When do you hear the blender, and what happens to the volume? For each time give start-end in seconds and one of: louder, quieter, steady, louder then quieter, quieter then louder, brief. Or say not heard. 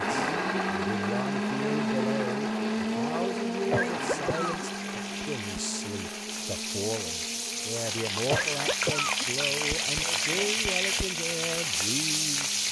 0.0-12.6 quieter.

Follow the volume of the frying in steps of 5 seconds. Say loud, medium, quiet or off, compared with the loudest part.
quiet, loud, loud.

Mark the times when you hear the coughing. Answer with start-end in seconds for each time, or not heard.
3.7-4.5, 8.3-9.2.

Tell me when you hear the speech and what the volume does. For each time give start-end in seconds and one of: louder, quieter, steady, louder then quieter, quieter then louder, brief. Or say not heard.
0.0-12.6 steady.